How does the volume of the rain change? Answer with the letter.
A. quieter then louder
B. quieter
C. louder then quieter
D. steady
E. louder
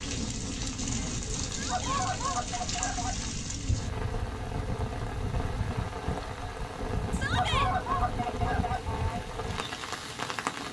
D.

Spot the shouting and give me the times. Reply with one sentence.
You can hear the shouting from 1.5 to 2.0 s and from 7.1 to 7.7 s.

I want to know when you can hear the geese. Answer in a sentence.
You can hear the geese from 1.6 to 3.3 s and from 7.3 to 9.2 s.